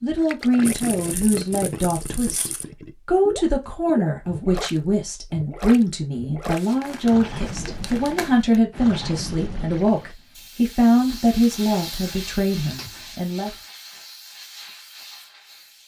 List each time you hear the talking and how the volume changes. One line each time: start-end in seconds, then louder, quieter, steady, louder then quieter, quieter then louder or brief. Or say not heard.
0.0-13.6 steady.